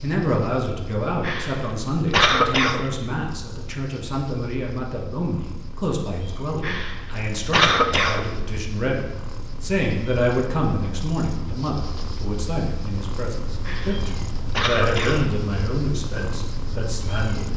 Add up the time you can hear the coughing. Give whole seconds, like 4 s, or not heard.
5 s.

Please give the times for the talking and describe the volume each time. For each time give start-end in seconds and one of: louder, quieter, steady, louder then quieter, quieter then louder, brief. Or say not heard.
0.0-17.5 steady.